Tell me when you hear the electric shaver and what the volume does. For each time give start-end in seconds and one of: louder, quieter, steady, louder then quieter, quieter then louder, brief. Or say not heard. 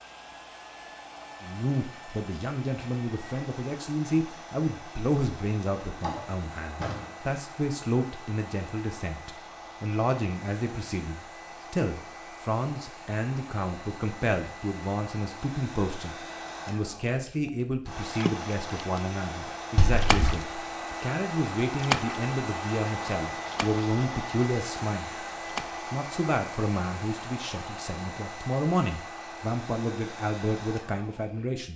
not heard.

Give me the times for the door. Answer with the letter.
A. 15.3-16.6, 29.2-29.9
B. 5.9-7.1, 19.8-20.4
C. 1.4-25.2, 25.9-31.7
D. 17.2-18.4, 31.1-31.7
B.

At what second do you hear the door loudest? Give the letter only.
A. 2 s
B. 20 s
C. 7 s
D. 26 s
B.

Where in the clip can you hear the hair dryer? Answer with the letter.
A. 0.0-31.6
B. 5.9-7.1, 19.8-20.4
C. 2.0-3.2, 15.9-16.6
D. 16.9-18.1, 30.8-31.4
A.